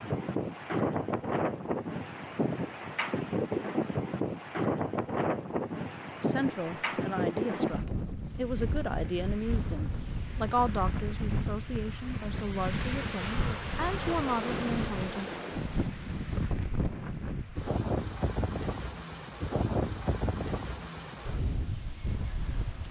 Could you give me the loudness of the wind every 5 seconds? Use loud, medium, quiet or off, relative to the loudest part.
loud, loud, loud, loud, medium.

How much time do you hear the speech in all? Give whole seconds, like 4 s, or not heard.
9 s.